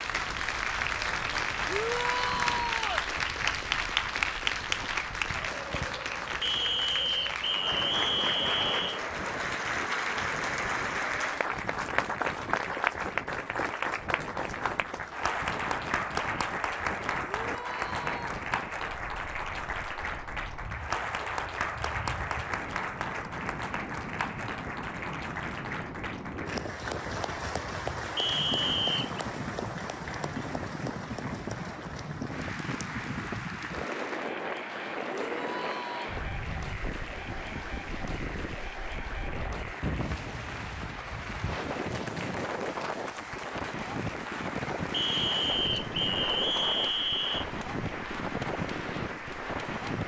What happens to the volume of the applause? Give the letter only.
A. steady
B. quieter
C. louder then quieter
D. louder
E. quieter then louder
B.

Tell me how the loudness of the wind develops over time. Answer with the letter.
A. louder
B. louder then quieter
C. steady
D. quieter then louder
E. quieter
A.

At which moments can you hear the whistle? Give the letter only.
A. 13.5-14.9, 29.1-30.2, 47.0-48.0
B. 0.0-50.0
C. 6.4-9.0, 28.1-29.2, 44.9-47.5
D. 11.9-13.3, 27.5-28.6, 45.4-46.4
C.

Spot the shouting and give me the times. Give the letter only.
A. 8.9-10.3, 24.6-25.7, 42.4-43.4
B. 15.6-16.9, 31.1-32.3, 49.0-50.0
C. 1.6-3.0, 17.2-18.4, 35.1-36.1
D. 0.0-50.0
C.